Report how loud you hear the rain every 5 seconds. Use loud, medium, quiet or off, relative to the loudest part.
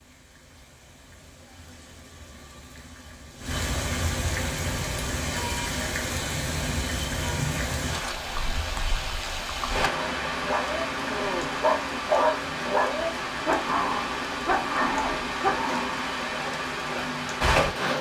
medium, loud, loud, loud.